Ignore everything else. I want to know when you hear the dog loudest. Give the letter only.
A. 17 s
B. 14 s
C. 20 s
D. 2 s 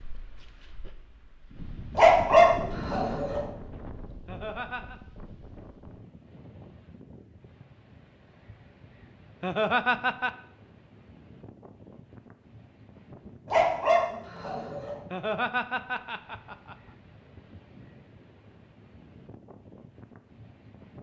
D.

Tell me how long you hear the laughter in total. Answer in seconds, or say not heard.
3 s.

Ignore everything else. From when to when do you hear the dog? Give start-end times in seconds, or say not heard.
1.9-3.5, 13.4-15.0.